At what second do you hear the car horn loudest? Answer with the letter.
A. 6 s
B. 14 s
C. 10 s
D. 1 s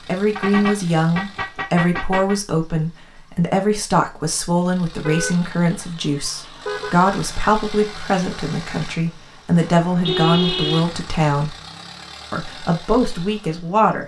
C.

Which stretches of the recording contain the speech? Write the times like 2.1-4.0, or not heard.
0.1-11.6, 12.3-14.0.